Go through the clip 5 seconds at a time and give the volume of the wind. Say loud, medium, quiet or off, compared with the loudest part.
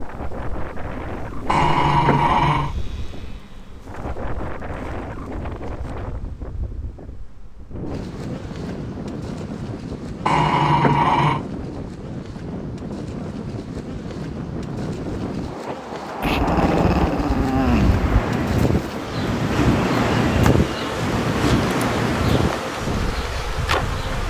medium, medium, medium, loud, loud.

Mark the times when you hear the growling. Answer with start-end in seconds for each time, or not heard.
1.4-2.8, 10.2-11.4, 16.2-18.1.